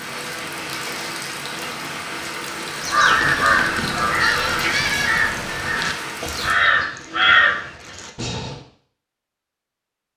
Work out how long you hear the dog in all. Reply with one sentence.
You can't hear the dog here.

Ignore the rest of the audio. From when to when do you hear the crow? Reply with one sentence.
You can hear the crow from 2.8 to 8.6 s.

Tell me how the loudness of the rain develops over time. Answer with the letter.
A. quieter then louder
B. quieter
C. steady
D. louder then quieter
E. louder
C.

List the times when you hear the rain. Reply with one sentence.
You can hear the rain from 0.0 to 6.5 s.